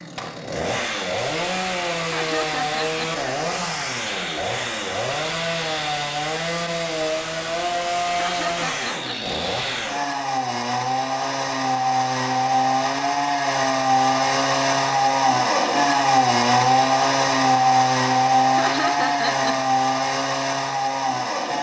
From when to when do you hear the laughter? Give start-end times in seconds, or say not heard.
2.0-3.2, 8.1-9.2, 18.5-19.6.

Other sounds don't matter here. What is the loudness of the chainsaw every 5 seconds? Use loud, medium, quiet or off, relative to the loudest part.
medium, medium, loud, loud, medium.